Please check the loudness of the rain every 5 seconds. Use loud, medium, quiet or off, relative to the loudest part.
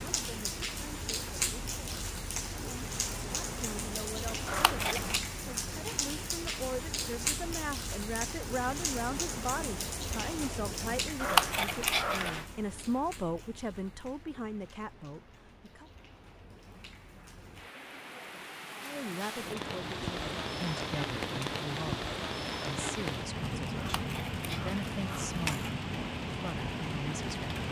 loud, loud, medium, medium, loud, loud.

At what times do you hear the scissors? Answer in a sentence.
You can hear the scissors from 4.5 to 5.2 s, from 11.2 to 12.4 s and from 23.8 to 25.7 s.